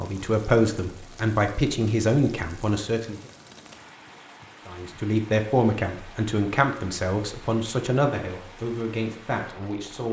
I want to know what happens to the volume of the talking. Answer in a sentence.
The volume of the talking goes down.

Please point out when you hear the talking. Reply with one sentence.
The talking can be heard from 0.0 to 3.2 s and from 4.7 to 10.0 s.